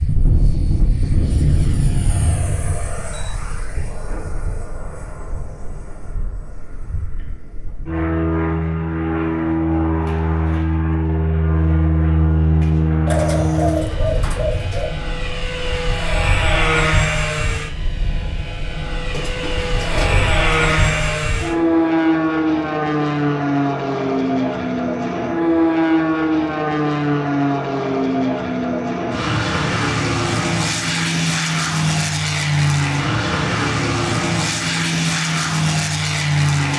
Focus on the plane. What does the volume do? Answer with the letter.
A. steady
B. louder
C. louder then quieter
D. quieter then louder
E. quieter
B.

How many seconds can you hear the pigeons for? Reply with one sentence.
The pigeons can be heard for 4 seconds in total.